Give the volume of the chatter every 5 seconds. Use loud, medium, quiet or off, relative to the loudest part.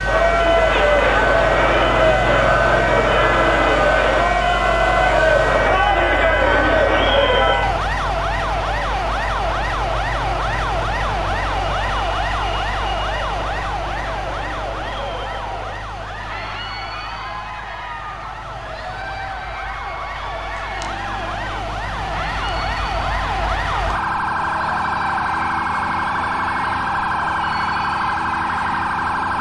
loud, loud, quiet, quiet, quiet, quiet.